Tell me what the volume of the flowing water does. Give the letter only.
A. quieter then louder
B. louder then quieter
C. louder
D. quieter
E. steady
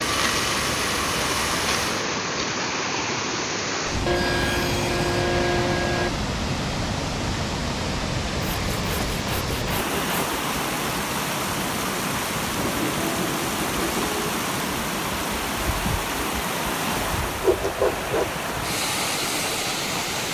E.